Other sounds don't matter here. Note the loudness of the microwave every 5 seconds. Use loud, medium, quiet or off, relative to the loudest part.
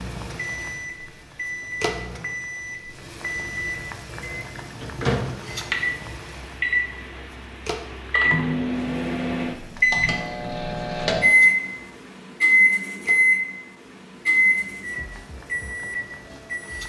quiet, medium, loud, quiet.